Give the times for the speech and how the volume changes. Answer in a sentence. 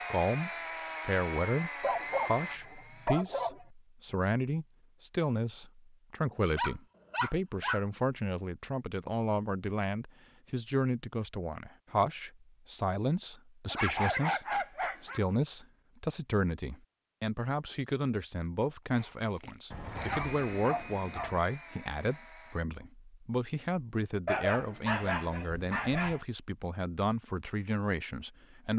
You can hear the speech from 0.1 to 28.7 s, at a steady volume.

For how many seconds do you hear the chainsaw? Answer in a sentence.
You can hear the chainsaw for 7 seconds altogether.